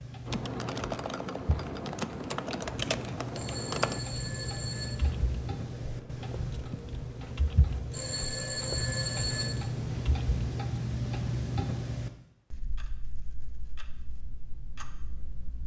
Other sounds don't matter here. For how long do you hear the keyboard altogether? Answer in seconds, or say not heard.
10 s.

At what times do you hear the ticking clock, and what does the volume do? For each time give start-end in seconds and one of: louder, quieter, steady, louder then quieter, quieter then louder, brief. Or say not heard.
0.0-15.6 louder then quieter.